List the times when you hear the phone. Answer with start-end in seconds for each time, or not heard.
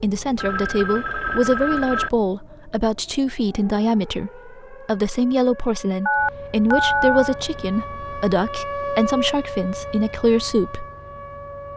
0.3-2.1, 6.0-7.3.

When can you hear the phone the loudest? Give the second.
7 s.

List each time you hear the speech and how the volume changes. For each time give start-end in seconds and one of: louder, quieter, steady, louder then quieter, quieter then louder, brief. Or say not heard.
0.0-10.8 steady.